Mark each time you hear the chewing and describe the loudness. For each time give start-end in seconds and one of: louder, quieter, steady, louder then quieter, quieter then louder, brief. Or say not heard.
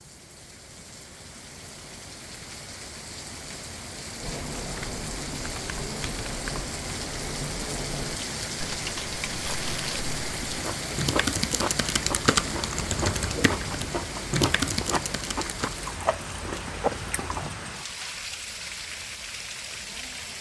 9.2-17.5 louder.